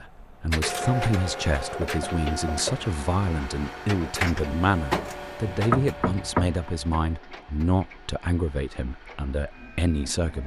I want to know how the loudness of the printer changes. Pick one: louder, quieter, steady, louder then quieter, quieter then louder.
quieter.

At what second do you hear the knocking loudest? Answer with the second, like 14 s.
6 s.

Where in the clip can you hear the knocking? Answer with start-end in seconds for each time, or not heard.
1.8-2.9, 5.5-6.7.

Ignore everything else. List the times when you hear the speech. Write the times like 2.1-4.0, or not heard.
0.0-10.4.